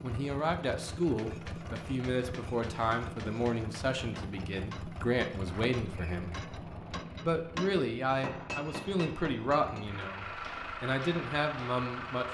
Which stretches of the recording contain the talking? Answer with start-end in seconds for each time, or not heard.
0.0-6.3, 7.2-12.2.